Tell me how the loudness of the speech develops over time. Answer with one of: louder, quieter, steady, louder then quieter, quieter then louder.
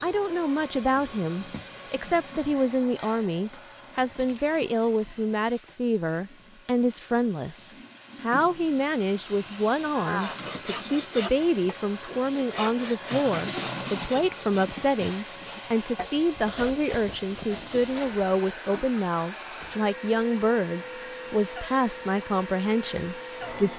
steady.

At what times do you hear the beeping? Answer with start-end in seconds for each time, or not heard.
not heard.